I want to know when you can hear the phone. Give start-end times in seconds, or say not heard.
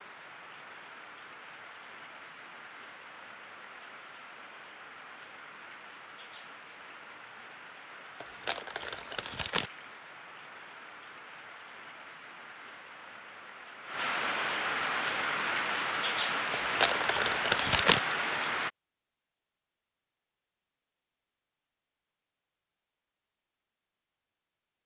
not heard.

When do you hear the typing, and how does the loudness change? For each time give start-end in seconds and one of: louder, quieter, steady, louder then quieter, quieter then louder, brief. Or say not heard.
not heard.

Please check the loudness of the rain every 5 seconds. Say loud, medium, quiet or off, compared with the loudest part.
quiet, quiet, medium, loud, off.